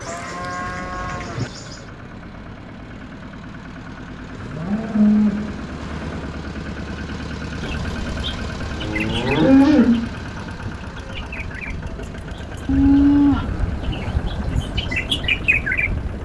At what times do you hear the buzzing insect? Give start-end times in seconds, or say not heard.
0.0-1.9.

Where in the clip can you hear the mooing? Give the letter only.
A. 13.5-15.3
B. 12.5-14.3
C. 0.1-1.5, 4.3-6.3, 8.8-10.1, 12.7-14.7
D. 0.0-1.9
C.